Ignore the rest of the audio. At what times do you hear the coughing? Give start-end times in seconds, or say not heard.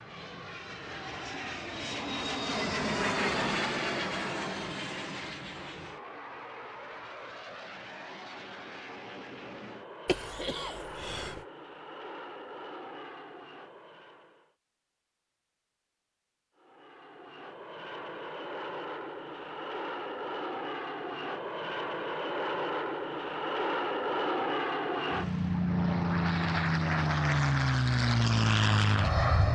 10.1-11.4.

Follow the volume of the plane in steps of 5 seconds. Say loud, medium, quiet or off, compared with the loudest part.
medium, quiet, quiet, quiet, medium, loud.